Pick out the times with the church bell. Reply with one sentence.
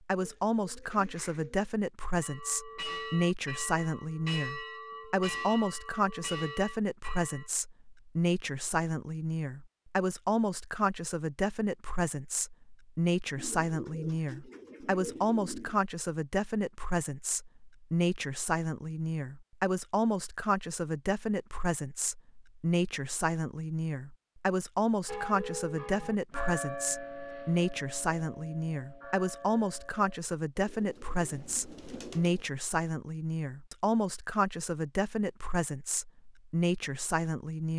You can hear the church bell from 2.2 to 7.5 s and from 25.1 to 30.4 s.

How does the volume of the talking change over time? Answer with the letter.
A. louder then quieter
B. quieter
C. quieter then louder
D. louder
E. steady
E.